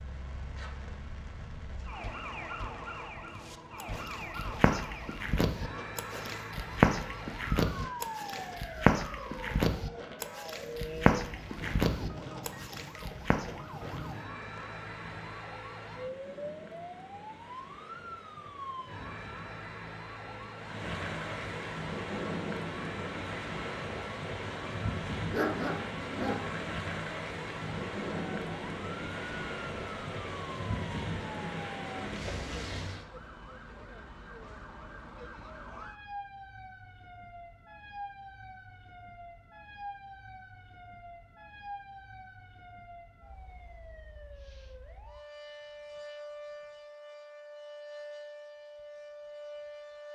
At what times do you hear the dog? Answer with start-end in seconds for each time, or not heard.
25.3-26.5.